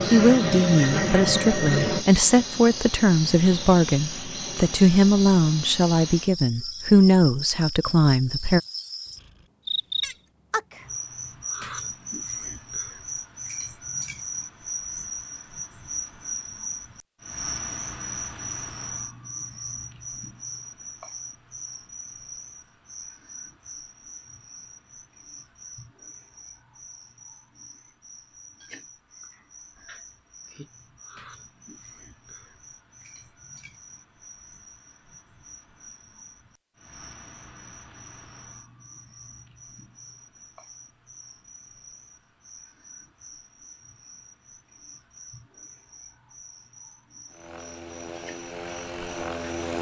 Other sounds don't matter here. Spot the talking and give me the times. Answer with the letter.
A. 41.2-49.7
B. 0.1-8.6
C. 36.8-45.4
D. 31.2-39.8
B.